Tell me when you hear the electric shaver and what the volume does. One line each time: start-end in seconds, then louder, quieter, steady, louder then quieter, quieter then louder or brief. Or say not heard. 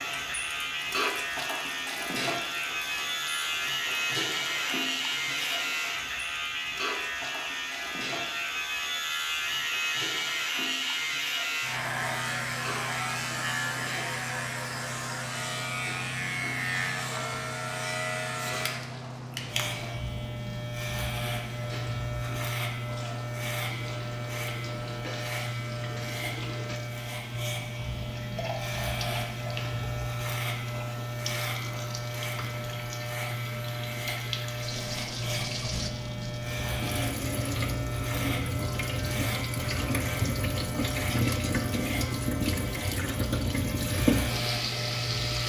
0.0-45.4 steady.